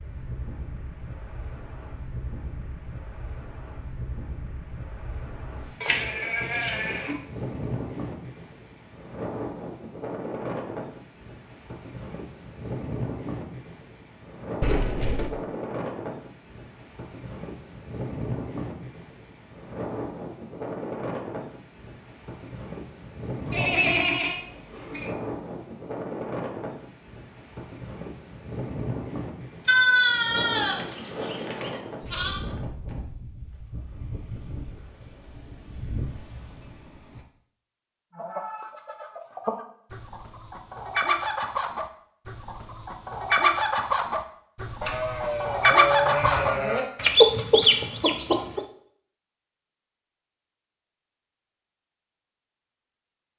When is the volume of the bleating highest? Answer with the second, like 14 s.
30 s.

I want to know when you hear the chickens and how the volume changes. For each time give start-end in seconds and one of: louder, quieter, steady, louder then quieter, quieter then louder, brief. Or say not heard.
38.1-48.6 louder.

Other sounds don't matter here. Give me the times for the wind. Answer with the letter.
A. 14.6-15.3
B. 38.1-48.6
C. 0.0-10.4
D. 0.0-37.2
D.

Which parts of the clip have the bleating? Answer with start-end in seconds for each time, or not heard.
5.8-7.2, 23.4-25.1, 29.6-32.4, 44.8-46.9.